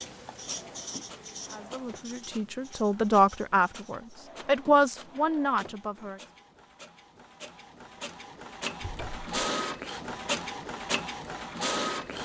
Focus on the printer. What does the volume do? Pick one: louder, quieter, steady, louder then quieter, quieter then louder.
louder.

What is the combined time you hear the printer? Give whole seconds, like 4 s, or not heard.
12 s.